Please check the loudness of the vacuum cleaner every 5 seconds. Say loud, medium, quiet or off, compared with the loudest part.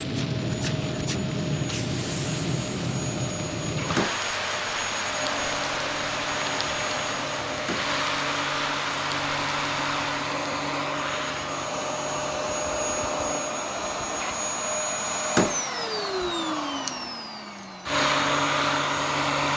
medium, loud, loud, loud.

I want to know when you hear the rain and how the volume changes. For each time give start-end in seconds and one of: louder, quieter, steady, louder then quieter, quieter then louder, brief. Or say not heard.
0.0-10.4 steady.